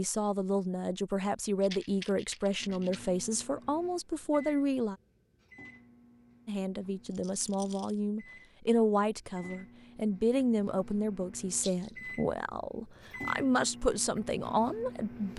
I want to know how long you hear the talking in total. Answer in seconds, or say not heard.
14 s.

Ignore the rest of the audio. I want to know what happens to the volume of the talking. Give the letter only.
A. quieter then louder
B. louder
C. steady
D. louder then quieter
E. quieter
C.